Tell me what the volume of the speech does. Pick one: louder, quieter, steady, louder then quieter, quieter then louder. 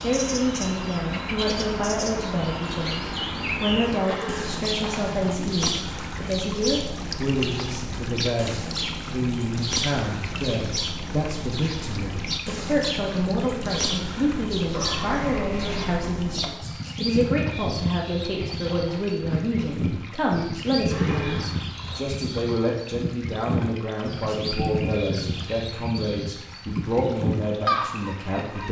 steady.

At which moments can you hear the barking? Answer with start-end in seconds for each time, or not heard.
not heard.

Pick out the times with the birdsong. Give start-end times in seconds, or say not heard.
0.0-28.6.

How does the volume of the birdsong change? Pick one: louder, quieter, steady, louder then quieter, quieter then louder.
steady.